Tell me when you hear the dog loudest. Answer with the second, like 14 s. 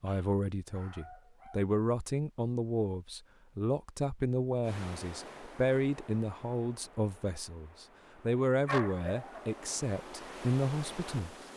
9 s.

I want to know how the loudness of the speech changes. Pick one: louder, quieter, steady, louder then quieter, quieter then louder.
steady.